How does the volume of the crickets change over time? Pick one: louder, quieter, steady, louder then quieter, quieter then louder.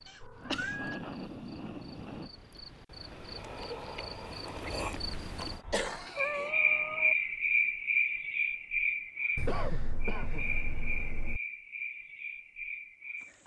louder then quieter.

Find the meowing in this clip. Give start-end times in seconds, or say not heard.
0.2-1.0, 5.3-7.2, 9.3-11.4.